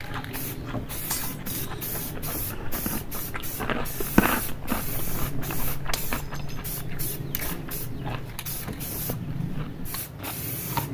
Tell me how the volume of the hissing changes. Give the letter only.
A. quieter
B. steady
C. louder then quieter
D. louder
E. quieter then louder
B.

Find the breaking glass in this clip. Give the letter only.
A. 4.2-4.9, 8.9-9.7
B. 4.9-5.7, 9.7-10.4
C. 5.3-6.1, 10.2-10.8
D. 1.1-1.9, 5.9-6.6
D.